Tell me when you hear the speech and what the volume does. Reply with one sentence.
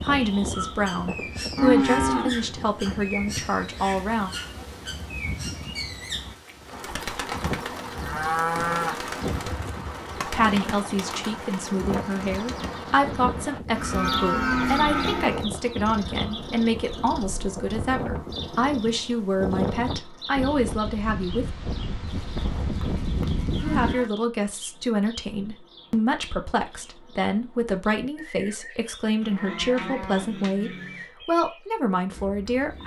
The speech can be heard from 0.0 to 4.3 s, getting louder then quieter; from 10.2 to 21.5 s, at a steady volume; and from 23.6 to 32.8 s, at a steady volume.